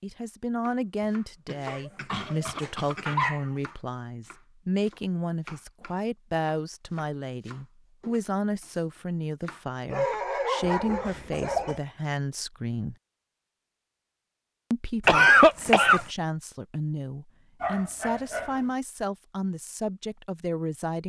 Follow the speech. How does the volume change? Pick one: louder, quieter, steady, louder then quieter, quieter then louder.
steady.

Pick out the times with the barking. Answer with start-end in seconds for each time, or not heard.
1.6-3.5, 9.9-11.8, 17.6-18.6.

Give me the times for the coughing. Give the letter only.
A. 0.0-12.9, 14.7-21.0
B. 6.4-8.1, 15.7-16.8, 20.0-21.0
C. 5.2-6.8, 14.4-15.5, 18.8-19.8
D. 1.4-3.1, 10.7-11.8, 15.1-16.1
D.